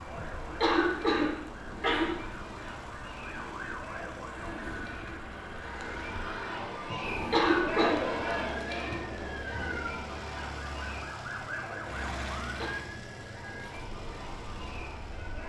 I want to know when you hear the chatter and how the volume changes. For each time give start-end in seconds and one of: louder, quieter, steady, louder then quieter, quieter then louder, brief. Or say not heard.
0.0-15.4 louder then quieter.